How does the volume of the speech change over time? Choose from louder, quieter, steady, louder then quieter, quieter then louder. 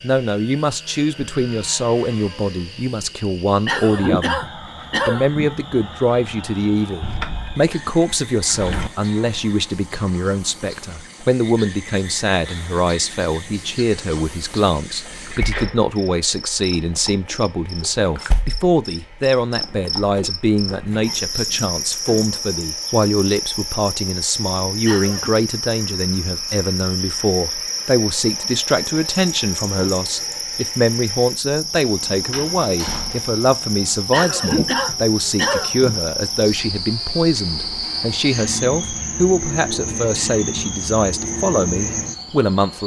steady.